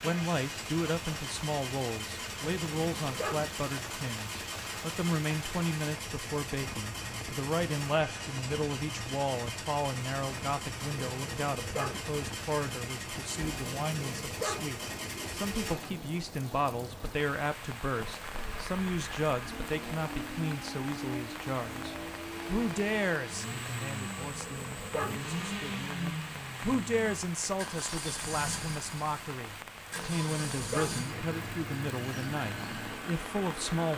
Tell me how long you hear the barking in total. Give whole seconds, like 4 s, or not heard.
5 s.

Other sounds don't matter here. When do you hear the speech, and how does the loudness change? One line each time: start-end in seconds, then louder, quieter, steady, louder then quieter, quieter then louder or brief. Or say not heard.
0.0-33.9 steady.